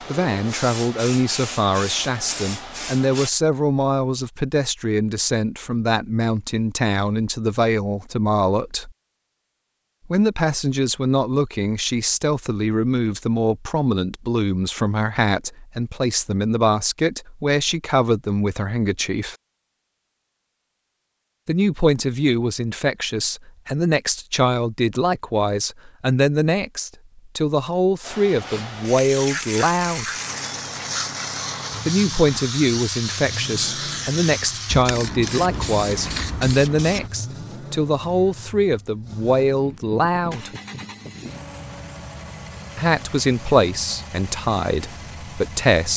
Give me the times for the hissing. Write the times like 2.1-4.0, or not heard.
0.0-3.3, 28.0-37.1.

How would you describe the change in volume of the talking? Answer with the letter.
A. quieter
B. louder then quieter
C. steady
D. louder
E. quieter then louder
C.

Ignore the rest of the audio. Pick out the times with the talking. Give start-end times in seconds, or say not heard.
0.1-8.9, 10.1-19.4, 21.4-30.1, 31.9-40.5, 42.8-45.9.